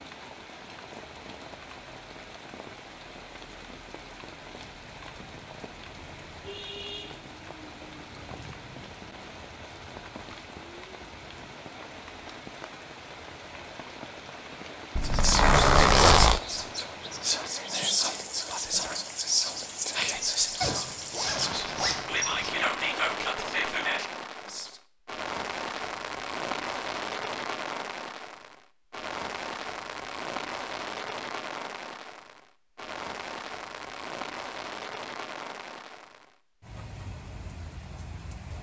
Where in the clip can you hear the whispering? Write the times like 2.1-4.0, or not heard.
15.0-24.8.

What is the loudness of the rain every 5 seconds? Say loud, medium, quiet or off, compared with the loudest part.
medium, medium, medium, medium, loud, loud, loud, medium.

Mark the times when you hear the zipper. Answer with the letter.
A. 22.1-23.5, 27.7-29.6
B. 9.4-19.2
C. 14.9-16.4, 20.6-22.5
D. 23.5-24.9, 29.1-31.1
C.